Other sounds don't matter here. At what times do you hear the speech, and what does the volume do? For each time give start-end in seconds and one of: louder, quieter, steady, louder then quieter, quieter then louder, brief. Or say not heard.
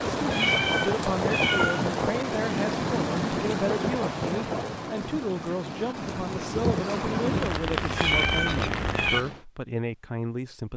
0.2-10.7 steady.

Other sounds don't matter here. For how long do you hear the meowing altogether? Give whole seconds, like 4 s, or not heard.
3 s.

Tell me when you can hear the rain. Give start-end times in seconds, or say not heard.
0.0-9.4.